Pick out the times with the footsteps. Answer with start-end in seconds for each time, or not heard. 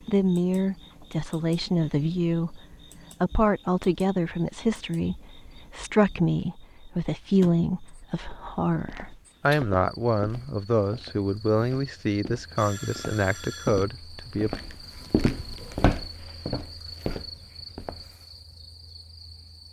8.7-18.1.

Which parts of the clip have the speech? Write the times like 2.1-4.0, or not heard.
0.1-2.6, 3.2-14.6.